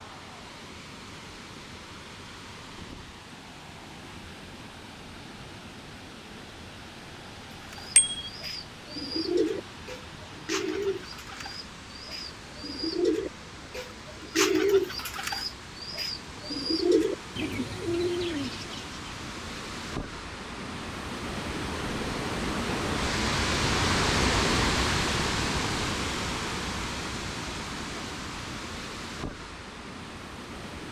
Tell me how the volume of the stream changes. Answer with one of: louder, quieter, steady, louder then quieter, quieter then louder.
louder.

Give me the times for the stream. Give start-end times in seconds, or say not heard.
0.0-30.8.